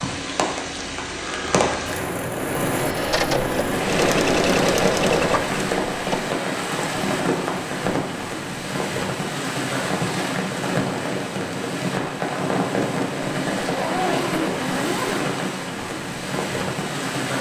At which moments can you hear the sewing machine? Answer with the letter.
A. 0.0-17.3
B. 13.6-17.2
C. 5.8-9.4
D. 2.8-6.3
D.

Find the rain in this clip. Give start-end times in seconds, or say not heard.
0.0-17.3.